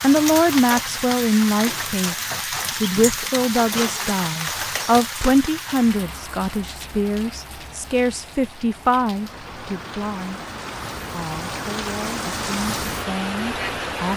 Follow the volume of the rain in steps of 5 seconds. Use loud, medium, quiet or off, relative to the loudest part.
loud, medium, loud.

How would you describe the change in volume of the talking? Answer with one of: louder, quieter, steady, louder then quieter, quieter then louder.
quieter.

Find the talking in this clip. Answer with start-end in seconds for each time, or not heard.
0.0-10.4, 11.1-14.1.